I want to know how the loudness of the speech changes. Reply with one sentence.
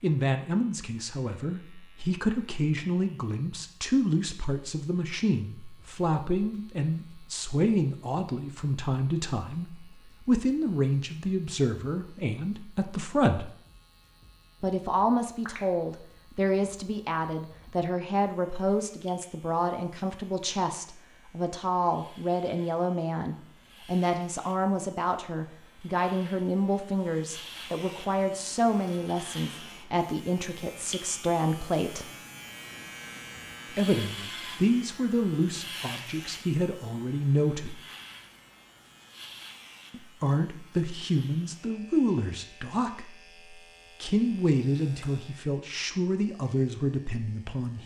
The volume of the speech stays about the same.